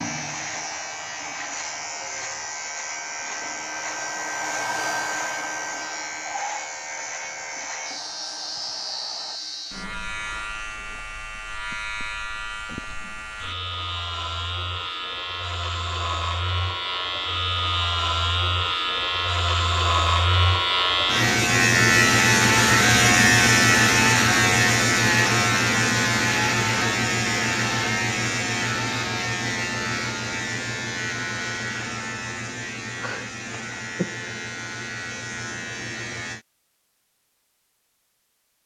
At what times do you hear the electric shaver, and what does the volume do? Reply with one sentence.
You can hear the electric shaver from 0.0 to 36.5 s, getting louder then quieter.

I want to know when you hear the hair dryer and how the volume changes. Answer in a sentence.
You can hear the hair dryer from 0.0 to 9.8 s, getting louder then quieter.